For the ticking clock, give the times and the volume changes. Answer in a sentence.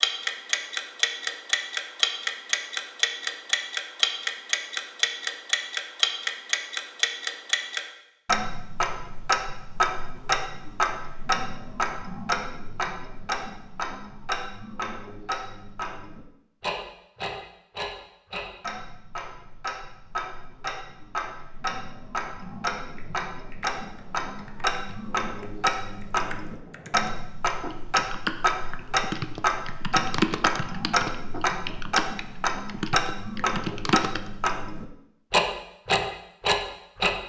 The ticking clock can be heard from 0.0 to 37.1 s, getting quieter then louder.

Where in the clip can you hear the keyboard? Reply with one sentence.
The keyboard can be heard from 22.4 to 34.3 s.